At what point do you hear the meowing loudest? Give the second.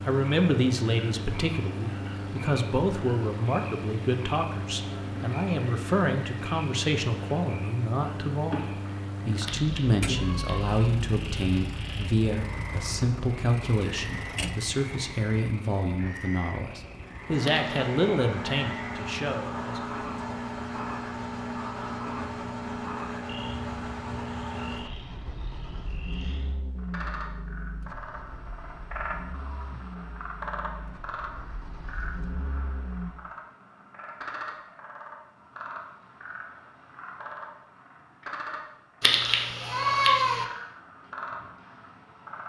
40 s.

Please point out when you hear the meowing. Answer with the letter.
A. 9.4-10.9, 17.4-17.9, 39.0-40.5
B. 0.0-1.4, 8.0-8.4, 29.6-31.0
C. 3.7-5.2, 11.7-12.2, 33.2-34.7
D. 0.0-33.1
A.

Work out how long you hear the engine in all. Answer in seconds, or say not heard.
33 s.